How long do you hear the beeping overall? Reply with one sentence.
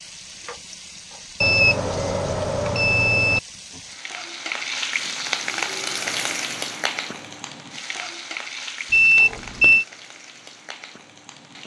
You can hear the beeping for 3 seconds altogether.